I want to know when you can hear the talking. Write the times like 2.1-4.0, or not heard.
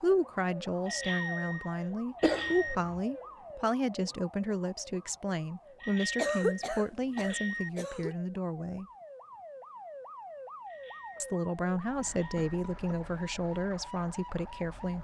0.0-8.8, 11.2-14.9.